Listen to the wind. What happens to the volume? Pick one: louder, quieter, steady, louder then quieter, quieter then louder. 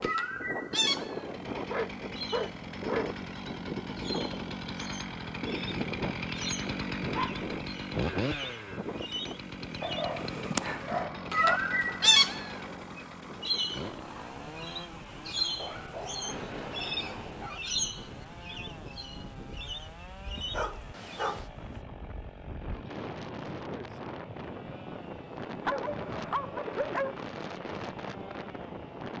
quieter then louder.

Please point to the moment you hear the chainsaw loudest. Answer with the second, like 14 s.
8 s.